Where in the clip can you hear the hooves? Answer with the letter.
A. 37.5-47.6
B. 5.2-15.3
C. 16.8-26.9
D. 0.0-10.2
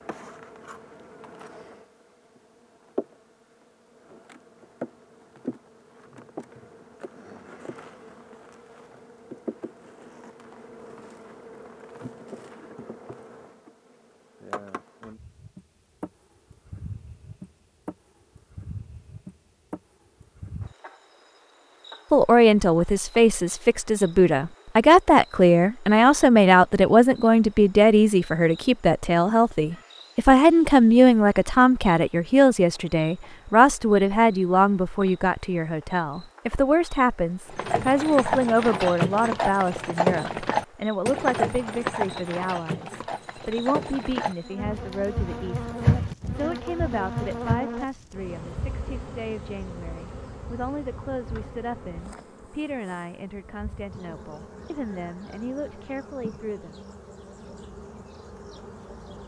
A.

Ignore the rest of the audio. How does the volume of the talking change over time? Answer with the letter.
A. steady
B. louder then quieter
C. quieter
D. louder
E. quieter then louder
C.